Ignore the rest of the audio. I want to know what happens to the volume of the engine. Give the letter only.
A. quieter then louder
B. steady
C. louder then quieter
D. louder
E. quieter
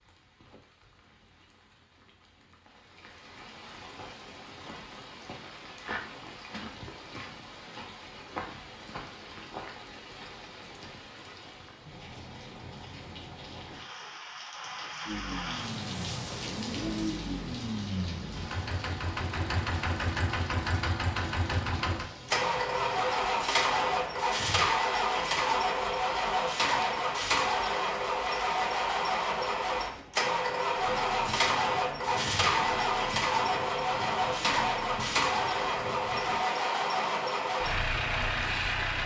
D.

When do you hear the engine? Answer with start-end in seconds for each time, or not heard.
15.1-39.0.